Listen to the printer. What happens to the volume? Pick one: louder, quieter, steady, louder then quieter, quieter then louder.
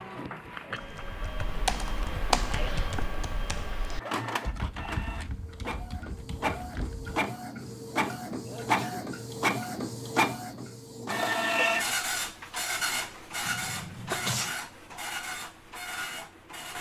louder then quieter.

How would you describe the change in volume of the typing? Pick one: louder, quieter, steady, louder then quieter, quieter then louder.
quieter.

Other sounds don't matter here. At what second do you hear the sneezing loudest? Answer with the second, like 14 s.
14 s.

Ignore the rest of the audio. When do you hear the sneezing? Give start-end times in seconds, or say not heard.
2.5-3.0, 8.4-9.1, 13.4-14.5.